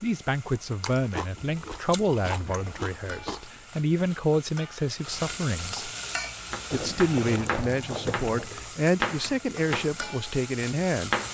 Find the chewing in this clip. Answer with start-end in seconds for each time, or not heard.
0.8-3.5, 6.7-8.6.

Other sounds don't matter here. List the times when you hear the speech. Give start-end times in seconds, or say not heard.
0.0-5.9, 6.7-11.2.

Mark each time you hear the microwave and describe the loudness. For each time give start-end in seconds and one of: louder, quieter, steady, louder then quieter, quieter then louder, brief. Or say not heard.
not heard.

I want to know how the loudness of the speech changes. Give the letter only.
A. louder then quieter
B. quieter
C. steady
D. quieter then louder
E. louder
C.